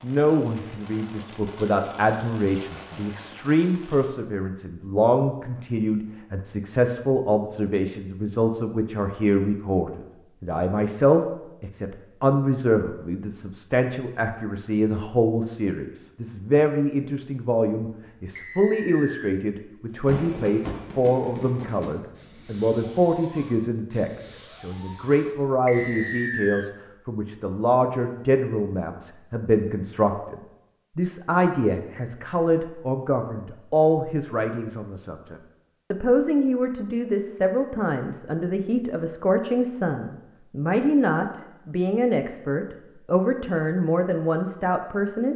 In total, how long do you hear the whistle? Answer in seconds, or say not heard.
2 s.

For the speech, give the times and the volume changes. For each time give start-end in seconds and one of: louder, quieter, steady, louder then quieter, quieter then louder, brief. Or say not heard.
0.0-45.3 steady.